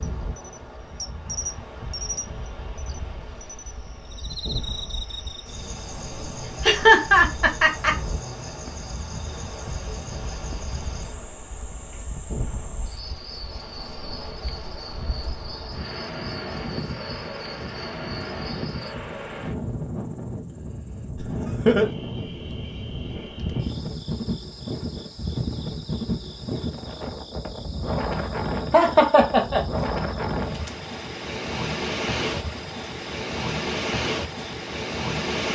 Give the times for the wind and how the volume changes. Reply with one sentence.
You can hear the wind from 0.0 to 35.4 s, getting louder.